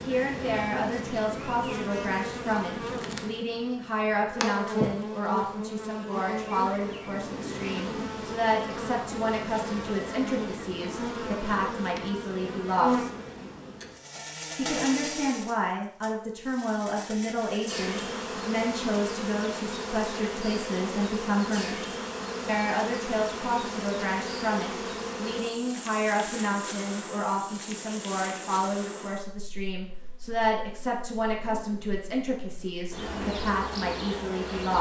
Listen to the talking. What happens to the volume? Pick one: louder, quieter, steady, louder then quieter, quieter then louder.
steady.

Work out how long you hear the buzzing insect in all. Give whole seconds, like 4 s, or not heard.
35 s.